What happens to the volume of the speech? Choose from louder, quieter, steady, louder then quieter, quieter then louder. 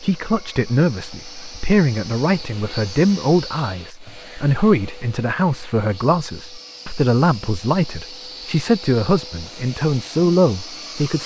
steady.